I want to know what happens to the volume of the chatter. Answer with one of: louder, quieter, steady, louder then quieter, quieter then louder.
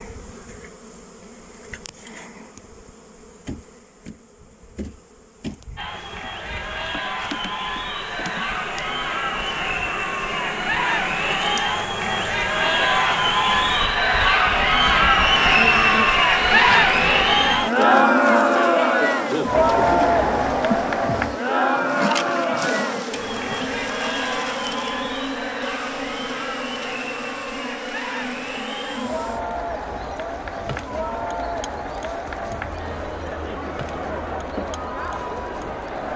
louder then quieter.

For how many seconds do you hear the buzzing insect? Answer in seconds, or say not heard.
36 s.